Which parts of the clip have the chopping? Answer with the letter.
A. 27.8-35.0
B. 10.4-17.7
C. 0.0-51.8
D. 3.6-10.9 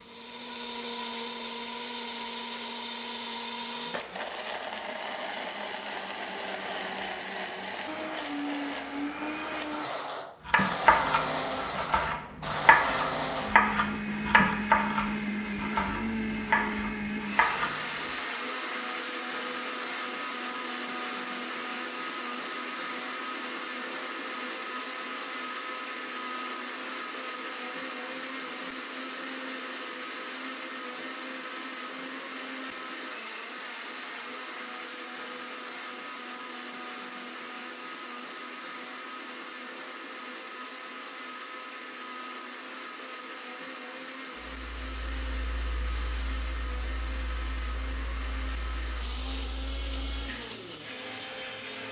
B.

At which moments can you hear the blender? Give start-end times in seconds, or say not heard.
0.0-51.8.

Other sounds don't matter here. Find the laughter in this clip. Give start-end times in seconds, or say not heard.
not heard.